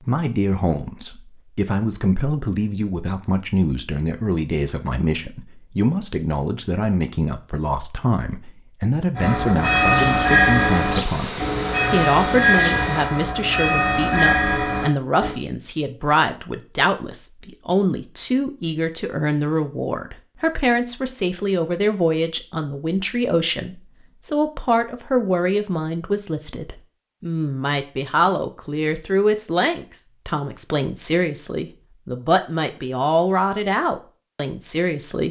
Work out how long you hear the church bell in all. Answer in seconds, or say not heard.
6 s.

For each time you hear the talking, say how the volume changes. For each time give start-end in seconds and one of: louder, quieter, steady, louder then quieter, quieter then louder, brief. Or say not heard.
0.0-35.2 steady.